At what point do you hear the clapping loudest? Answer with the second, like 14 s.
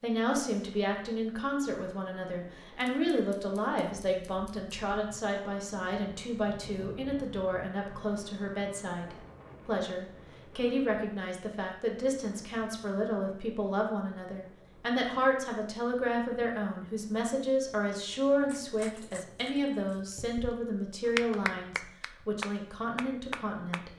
21 s.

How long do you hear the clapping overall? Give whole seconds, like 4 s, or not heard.
5 s.